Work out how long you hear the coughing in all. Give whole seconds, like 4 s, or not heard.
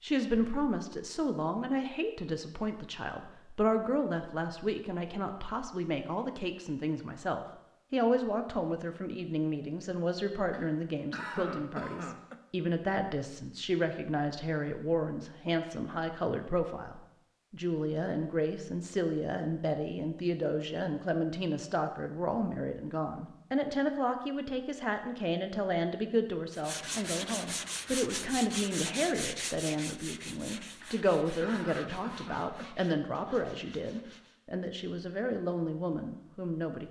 4 s.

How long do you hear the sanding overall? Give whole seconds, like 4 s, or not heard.
8 s.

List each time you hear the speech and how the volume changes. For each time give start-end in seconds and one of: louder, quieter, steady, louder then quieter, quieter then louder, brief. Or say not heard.
0.0-36.8 steady.